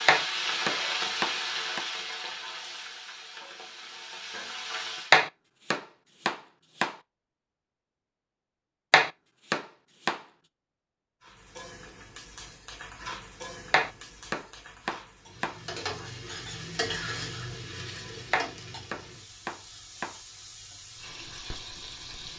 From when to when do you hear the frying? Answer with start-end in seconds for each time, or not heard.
0.0-5.2, 11.2-22.3.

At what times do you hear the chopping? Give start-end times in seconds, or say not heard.
0.1-1.9, 5.1-7.0, 8.9-10.2, 13.7-15.6, 18.3-20.1.